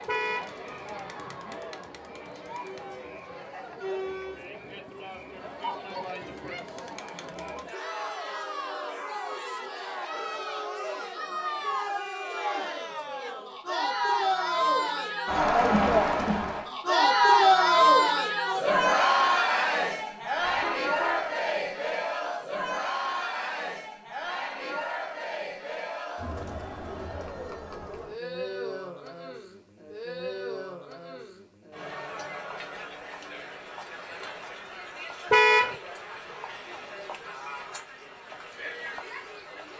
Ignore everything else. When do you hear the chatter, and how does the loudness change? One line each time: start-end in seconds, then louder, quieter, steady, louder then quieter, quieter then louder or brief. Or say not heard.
0.0-39.7 louder then quieter.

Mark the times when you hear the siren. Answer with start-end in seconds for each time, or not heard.
not heard.